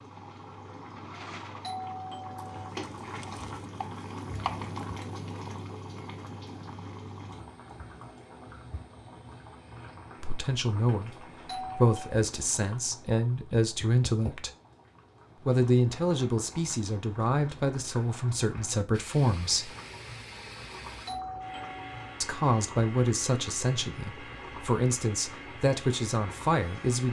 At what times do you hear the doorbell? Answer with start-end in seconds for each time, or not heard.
1.6-2.6, 11.4-12.2, 21.1-22.1.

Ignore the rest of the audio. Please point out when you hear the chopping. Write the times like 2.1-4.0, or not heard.
2.4-4.8.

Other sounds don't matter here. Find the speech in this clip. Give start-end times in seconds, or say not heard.
10.2-14.5, 15.4-19.8, 22.2-27.0.